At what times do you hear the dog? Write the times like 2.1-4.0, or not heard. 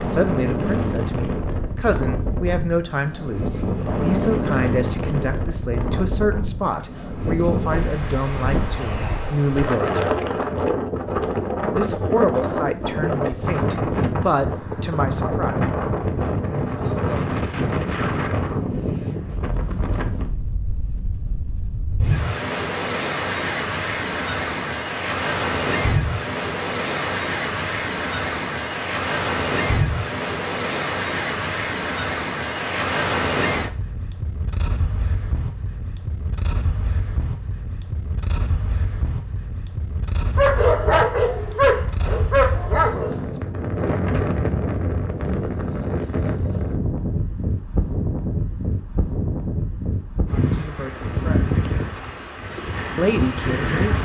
40.4-43.2.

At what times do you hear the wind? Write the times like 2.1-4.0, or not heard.
0.0-53.9.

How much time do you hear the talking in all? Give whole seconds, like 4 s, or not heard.
16 s.